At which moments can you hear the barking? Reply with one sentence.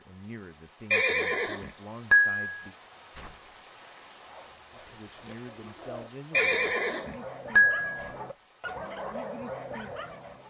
You can hear the barking from 4.2 to 10.4 s.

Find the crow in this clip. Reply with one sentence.
The crow can't be heard in this clip.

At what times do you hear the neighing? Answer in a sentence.
You can hear the neighing from 0.9 to 2.5 s and from 6.3 to 7.9 s.